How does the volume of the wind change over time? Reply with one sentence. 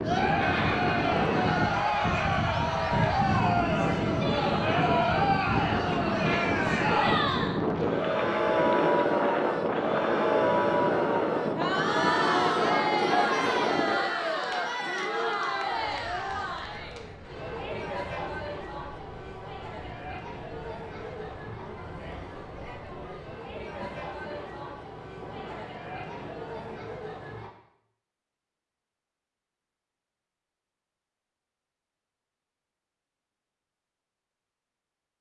The loudness of the wind goes down.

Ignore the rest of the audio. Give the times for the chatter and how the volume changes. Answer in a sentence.
The chatter can be heard from 0.0 to 27.5 s, getting quieter.